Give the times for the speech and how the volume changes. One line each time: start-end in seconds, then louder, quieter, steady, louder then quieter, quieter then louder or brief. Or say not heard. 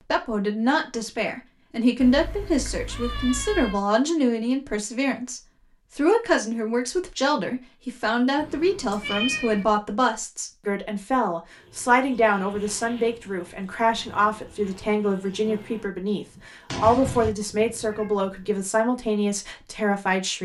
0.1-20.4 steady.